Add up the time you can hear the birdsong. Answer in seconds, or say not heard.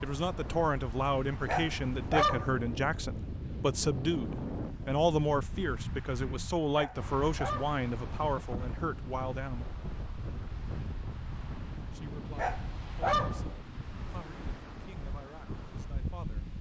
not heard.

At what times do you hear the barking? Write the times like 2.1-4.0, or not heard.
1.4-2.6, 6.7-7.8, 12.3-13.6.